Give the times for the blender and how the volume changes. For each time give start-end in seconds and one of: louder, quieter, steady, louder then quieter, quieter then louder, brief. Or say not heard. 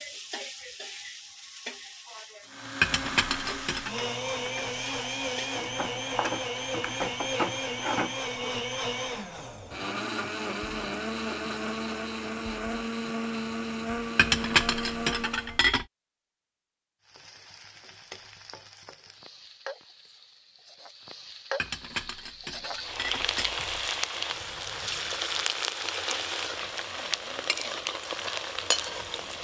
2.5-15.6 steady.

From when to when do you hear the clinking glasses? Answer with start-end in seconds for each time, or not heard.
2.8-3.9, 14.2-15.8, 21.6-23.9.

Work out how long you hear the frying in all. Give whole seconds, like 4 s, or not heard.
21 s.